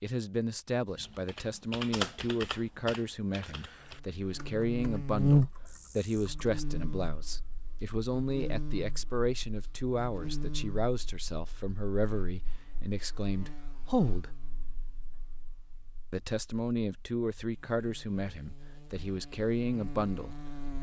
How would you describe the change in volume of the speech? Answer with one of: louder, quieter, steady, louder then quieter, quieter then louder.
steady.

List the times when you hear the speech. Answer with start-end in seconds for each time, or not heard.
0.0-14.4, 16.1-20.7.